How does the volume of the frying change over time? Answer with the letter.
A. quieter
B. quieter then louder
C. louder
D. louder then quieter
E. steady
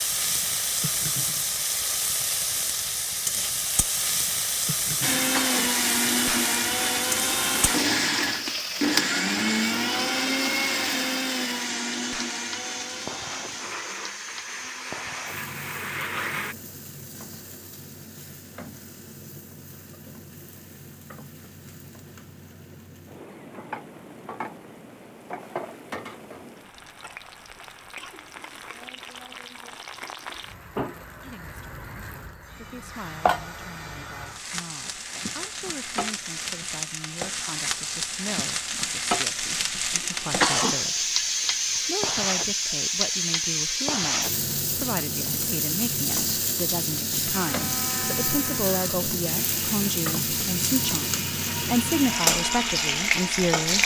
B.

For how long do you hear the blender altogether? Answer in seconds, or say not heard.
18 s.